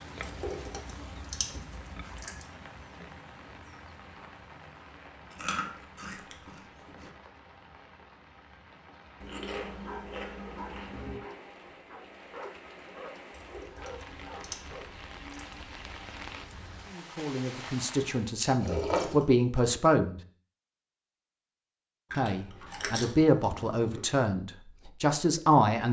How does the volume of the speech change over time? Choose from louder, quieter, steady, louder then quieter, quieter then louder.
louder.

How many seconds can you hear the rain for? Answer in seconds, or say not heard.
18 s.